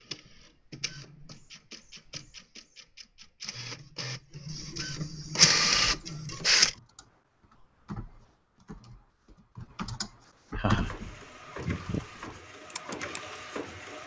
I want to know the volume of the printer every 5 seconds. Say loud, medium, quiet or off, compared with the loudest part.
quiet, loud, quiet.